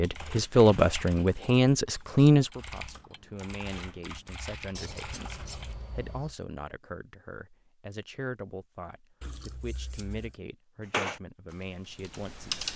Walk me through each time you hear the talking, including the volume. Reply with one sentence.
You can hear the talking from 0.0 to 12.7 s, getting quieter.